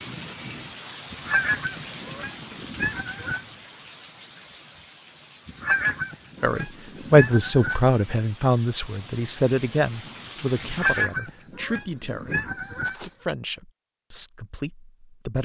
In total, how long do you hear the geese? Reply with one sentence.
You can hear the geese for 7 seconds altogether.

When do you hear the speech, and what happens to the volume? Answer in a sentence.
The speech can be heard from 6.4 to 15.3 s, getting quieter.